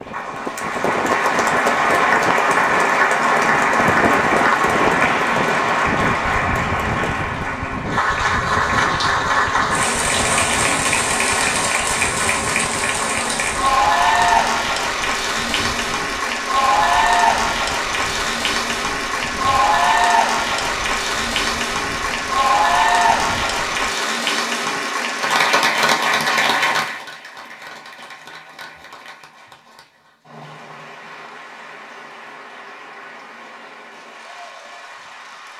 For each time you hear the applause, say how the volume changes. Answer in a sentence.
You can hear the applause from 0.1 to 35.5 s, getting quieter.